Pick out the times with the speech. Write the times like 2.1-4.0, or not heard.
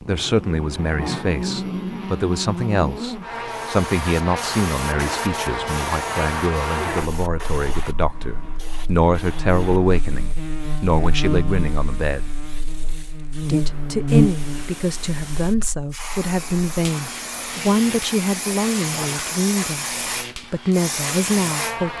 0.0-12.3, 13.4-21.9.